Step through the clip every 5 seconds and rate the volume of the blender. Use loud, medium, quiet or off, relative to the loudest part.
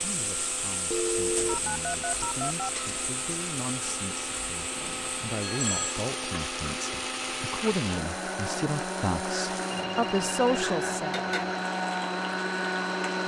medium, loud, loud.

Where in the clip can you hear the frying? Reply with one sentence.
The frying can be heard from 0.0 to 13.1 s.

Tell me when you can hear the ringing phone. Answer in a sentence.
The ringing phone can be heard from 0.9 to 2.6 s, from 4.8 to 6.0 s and from 9.8 to 10.5 s.